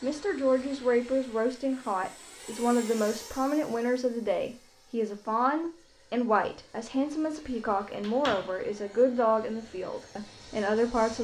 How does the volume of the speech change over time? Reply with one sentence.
The loudness of the speech stays about the same.